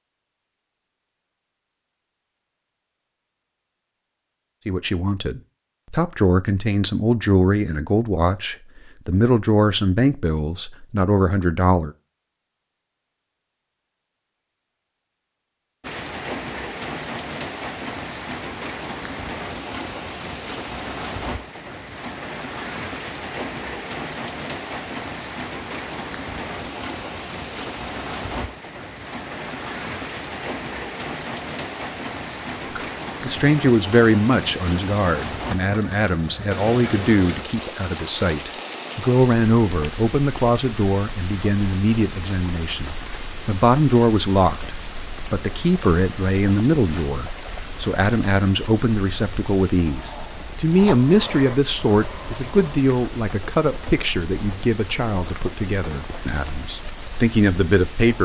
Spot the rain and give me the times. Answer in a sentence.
The rain can be heard from 15.8 to 58.2 s.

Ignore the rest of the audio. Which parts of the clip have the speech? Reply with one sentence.
The speech can be heard from 4.7 to 11.9 s and from 32.8 to 58.2 s.